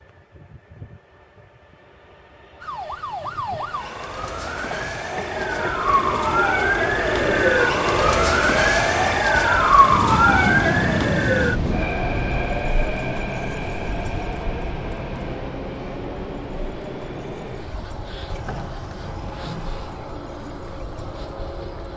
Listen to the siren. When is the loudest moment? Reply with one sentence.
The loudest moment of the siren is at 10 seconds.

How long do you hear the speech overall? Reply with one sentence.
You can't hear the speech here.